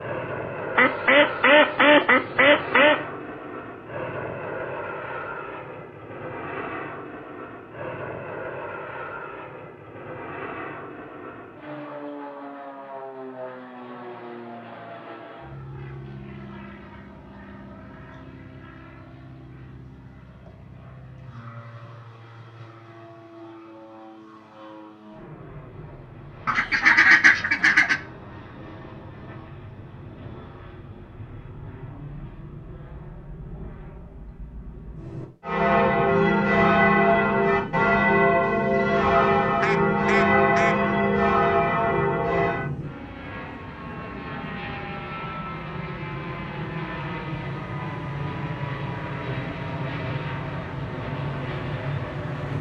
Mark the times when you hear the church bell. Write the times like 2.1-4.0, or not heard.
35.4-42.7.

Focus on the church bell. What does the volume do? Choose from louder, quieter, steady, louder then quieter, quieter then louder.
steady.